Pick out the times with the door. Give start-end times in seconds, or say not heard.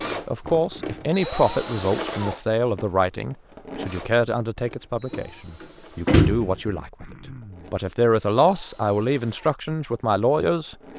5.1-6.5.